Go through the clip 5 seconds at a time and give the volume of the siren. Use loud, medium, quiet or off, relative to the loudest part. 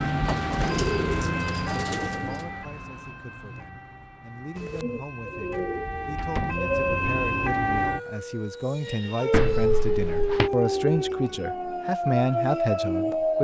medium, loud, loud.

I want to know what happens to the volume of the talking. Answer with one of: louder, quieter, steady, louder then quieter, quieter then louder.
louder.